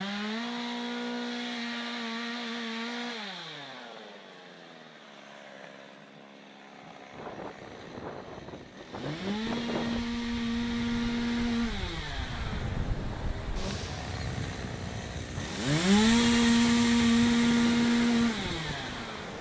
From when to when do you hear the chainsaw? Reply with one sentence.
You can hear the chainsaw from 0.0 to 19.3 s.